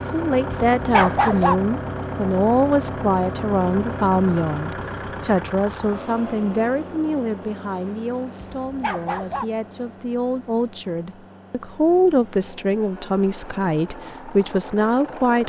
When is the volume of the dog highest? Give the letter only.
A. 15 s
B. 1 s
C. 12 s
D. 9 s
B.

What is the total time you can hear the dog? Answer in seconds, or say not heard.
2 s.